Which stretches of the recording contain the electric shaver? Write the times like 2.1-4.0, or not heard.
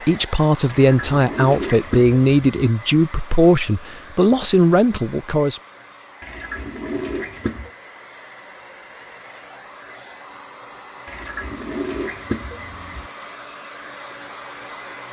not heard.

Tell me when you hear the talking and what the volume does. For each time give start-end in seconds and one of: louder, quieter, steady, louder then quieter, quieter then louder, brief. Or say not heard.
0.1-5.6 steady.